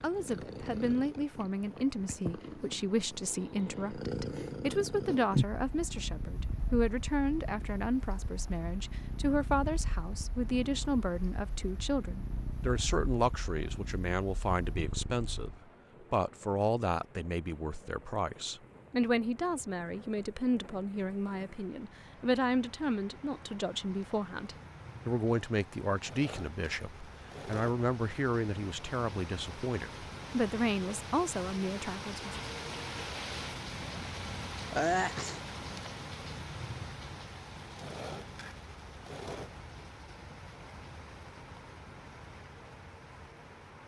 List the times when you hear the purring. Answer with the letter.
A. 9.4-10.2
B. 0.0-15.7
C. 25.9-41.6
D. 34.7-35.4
B.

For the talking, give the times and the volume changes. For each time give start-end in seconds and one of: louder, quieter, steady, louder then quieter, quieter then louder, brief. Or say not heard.
0.0-15.5 steady
16.1-32.4 steady.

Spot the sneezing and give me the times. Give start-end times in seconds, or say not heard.
34.7-35.4.